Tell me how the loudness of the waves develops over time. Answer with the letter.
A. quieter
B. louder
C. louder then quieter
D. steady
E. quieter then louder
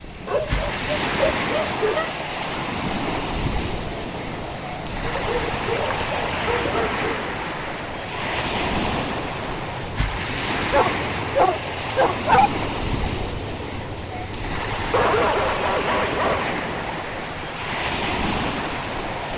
D.